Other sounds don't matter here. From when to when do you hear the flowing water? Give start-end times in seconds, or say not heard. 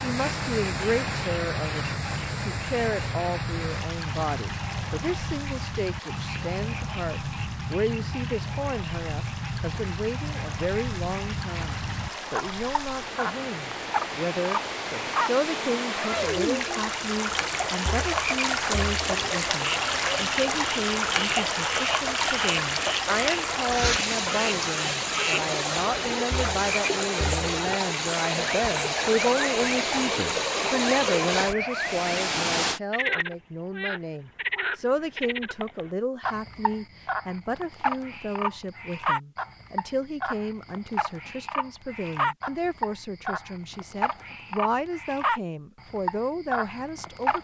0.0-32.8.